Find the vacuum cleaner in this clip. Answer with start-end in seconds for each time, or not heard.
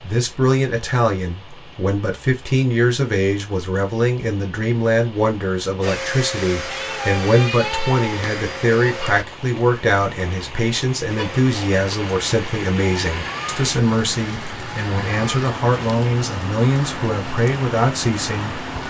5.8-9.2, 11.1-18.8.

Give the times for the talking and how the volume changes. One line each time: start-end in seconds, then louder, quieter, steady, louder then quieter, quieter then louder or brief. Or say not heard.
0.0-18.6 steady.